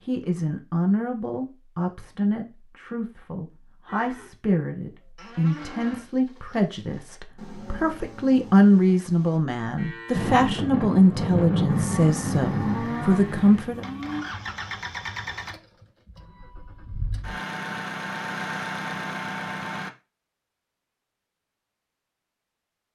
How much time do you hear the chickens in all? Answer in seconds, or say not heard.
not heard.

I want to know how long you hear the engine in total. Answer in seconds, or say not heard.
8 s.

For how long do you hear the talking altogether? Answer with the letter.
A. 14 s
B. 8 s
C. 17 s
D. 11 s
A.